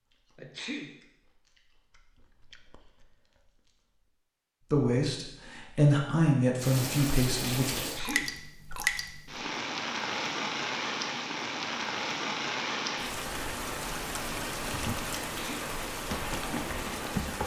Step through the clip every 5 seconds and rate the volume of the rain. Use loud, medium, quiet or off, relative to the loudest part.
off, loud, loud, loud.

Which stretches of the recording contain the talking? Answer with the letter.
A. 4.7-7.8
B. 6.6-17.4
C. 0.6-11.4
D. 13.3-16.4
A.